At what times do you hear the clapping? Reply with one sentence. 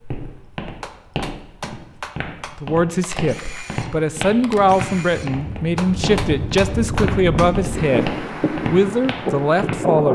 The clapping can be heard from 0.8 to 2.5 s and from 5.8 to 7.5 s.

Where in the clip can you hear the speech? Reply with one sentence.
The speech can be heard from 2.5 to 10.0 s.